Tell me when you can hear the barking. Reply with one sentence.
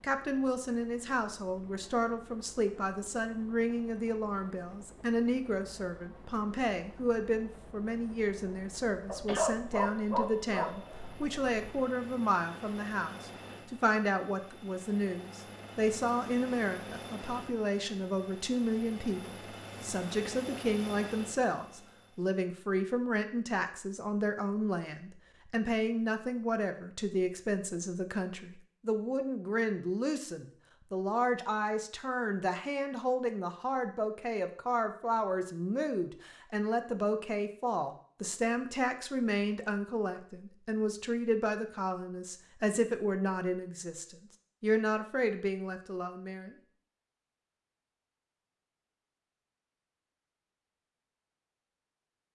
You can hear the barking from 9.1 to 11.8 s.